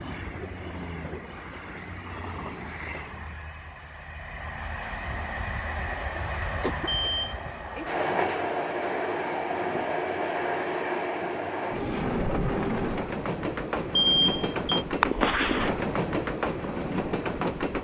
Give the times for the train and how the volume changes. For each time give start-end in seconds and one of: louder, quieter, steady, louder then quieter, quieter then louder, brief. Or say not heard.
0.0-17.7 louder.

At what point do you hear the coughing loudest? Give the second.
15 s.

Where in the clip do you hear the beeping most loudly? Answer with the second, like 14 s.
14 s.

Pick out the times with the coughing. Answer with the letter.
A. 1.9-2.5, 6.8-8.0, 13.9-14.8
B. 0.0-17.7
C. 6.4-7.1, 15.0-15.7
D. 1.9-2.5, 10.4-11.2
C.